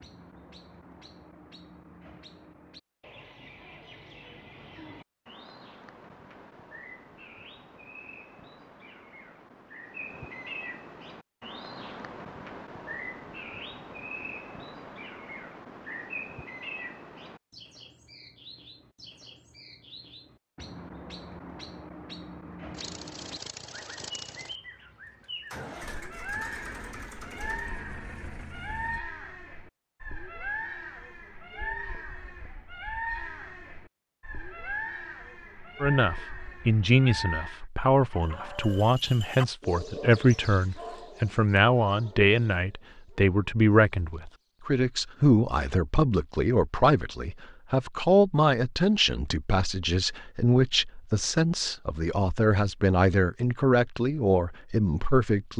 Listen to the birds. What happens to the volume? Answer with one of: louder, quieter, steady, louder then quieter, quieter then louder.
louder.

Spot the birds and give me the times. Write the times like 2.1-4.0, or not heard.
0.0-37.6.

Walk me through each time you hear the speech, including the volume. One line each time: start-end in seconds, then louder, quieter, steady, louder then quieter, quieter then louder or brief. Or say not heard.
35.8-55.5 steady.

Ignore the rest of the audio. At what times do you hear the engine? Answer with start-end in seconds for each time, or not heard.
22.7-29.0.